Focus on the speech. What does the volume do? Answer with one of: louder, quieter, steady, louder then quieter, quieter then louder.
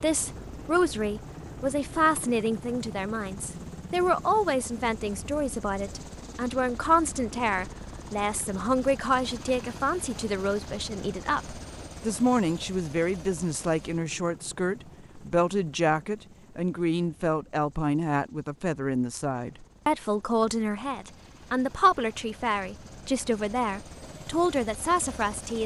steady.